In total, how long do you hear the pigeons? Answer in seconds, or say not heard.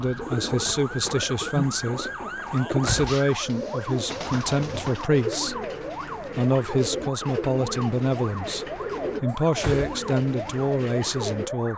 11 s.